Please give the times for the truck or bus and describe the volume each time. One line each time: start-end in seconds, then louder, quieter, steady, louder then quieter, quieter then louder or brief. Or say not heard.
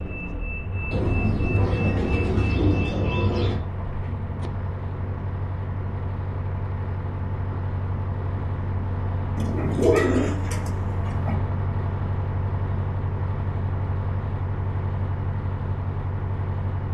0.0-16.8 steady.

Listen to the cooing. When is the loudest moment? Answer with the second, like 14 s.
10 s.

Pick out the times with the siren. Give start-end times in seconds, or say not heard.
not heard.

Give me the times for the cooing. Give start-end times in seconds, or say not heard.
0.9-3.6, 9.3-11.4.